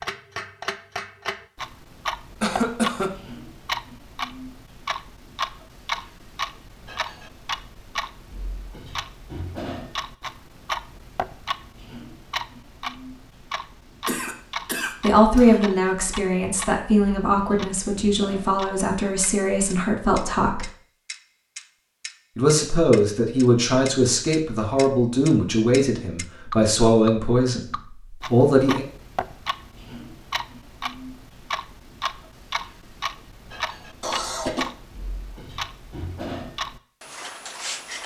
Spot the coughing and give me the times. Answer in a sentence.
The coughing can be heard from 2.4 to 3.1 s, from 14.1 to 15.6 s and from 34.0 to 34.7 s.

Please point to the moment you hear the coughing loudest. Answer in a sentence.
The loudest moment of the coughing is at 3 seconds.